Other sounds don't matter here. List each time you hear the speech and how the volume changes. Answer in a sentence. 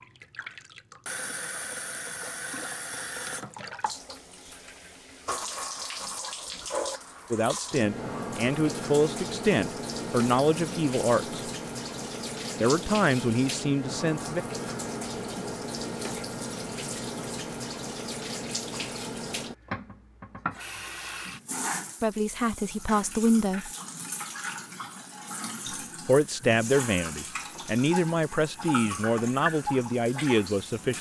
You can hear the speech from 7.3 to 11.4 s, at a steady volume; briefly from 12.6 to 14.4 s; briefly from 22.0 to 23.7 s; and from 26.1 to 30.9 s, at a steady volume.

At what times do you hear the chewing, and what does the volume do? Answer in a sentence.
The chewing can't be heard in this clip.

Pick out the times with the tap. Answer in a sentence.
The tap can be heard from 0.0 to 30.9 s.